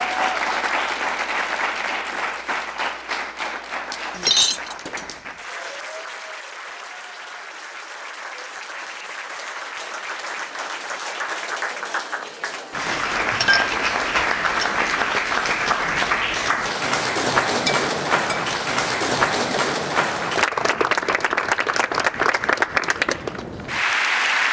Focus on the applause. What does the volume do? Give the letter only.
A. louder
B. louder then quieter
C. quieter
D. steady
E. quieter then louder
E.